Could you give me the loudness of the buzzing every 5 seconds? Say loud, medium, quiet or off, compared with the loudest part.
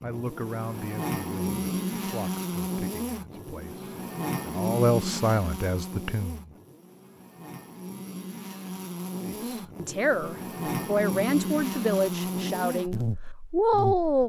loud, medium, loud.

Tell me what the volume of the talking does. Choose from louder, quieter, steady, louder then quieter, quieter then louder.
louder.